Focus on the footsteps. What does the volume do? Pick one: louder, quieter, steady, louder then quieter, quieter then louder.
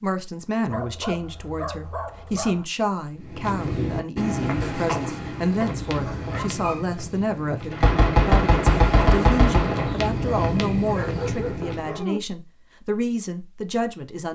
quieter then louder.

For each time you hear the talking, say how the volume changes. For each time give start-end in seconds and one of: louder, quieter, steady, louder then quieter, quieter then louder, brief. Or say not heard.
0.0-14.3 steady.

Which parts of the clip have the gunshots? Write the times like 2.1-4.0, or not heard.
7.7-9.9.